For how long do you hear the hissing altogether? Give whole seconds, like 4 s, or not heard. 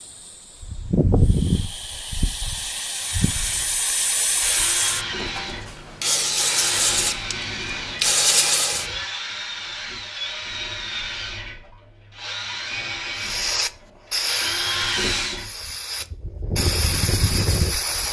14 s.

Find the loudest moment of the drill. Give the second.
15 s.